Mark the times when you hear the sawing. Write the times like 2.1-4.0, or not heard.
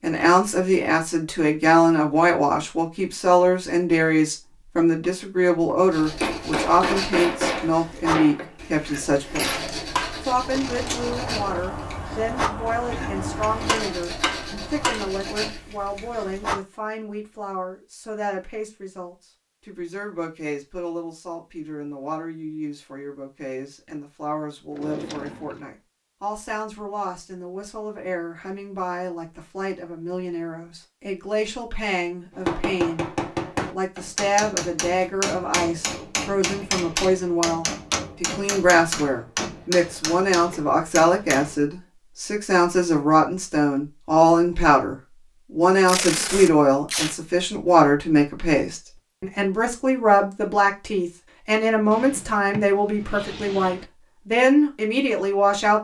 5.8-16.6.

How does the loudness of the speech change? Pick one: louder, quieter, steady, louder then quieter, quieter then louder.
quieter then louder.